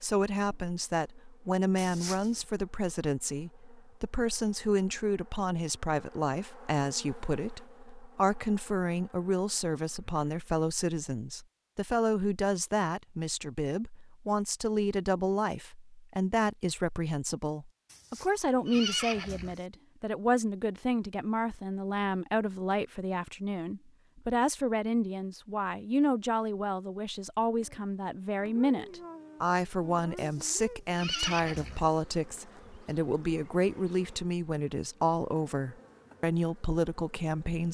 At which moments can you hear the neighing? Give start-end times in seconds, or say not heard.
1.8-2.5, 17.9-19.6, 30.1-31.9.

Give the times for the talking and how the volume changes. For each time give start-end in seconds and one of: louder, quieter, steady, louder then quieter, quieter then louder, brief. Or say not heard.
0.0-37.6 steady.